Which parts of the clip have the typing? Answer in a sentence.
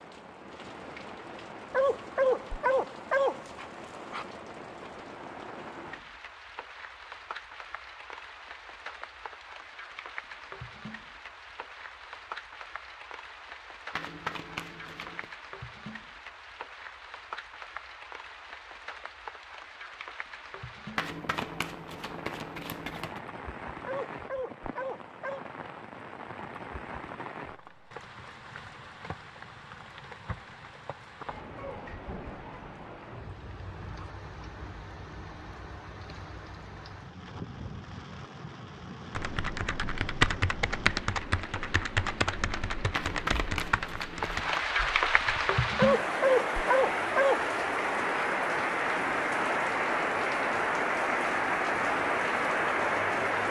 You can hear the typing from 39.1 to 45.5 s.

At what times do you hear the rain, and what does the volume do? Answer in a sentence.
The rain can be heard from 0.0 to 53.4 s, getting louder.